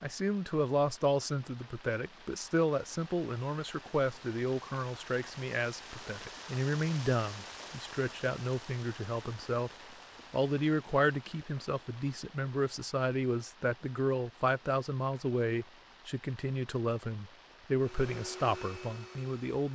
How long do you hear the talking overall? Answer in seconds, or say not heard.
19 s.